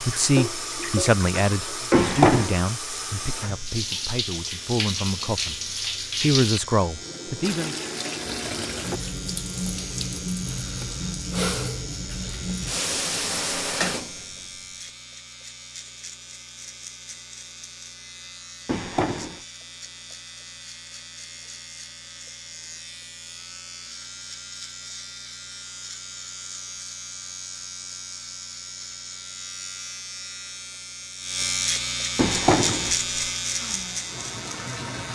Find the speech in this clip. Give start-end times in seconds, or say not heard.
0.0-5.6, 6.2-7.8.